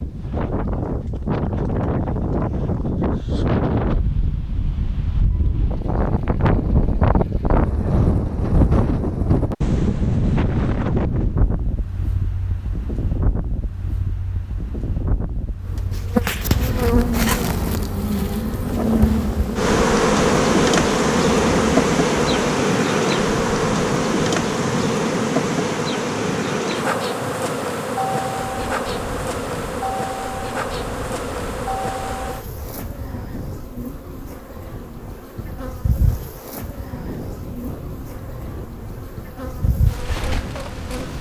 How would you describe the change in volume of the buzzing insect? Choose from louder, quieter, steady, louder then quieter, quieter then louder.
quieter.